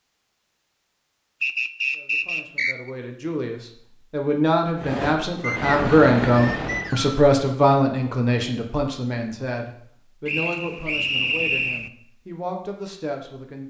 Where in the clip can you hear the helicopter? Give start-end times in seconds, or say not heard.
4.8-7.0.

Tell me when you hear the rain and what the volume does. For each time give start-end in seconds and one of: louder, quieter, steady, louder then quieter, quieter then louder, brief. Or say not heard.
not heard.